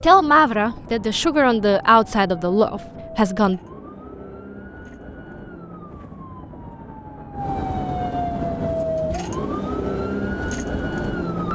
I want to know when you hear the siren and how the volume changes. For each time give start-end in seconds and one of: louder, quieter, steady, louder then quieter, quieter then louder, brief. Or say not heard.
0.0-11.5 louder.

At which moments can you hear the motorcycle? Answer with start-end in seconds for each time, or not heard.
not heard.